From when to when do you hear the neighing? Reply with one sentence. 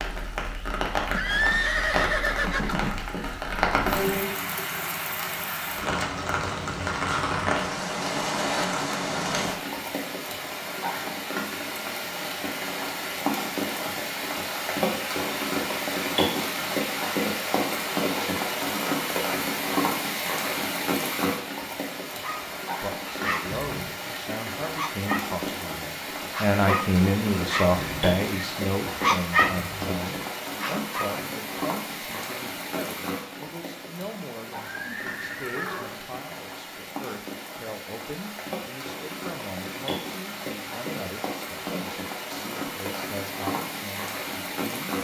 You can hear the neighing from 1.1 to 3.0 s and from 34.5 to 36.0 s.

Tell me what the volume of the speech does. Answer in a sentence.
The loudness of the speech goes down.